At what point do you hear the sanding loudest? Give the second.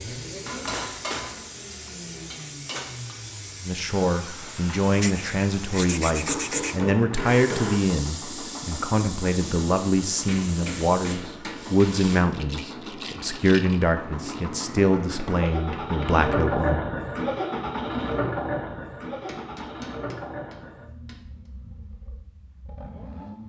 6 s.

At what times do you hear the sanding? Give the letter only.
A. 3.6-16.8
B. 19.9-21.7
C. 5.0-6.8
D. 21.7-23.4
C.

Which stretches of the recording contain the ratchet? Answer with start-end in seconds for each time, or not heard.
not heard.